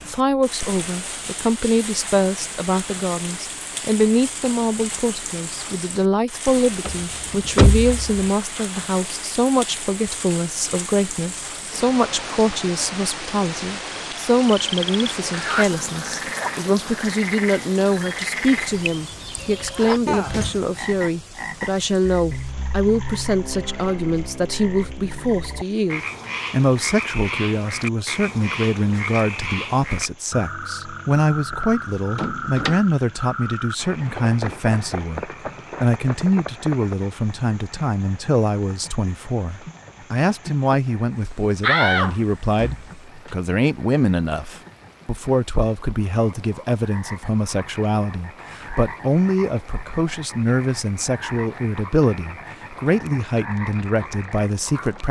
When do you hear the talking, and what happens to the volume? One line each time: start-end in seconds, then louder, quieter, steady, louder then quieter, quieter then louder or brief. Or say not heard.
0.0-55.0 steady.